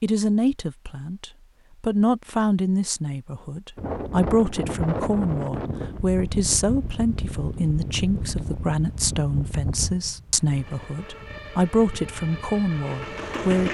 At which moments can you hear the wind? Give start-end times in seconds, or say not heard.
3.8-13.4.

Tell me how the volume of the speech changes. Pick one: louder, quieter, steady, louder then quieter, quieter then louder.
steady.